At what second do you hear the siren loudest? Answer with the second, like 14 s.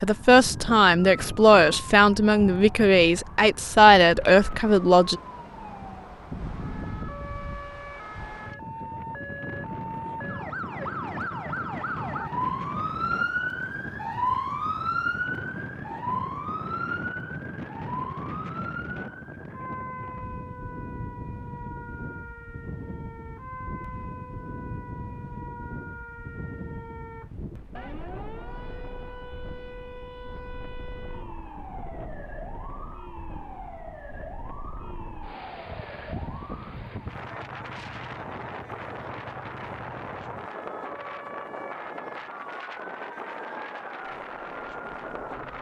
15 s.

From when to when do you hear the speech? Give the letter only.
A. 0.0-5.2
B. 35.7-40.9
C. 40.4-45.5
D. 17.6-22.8
A.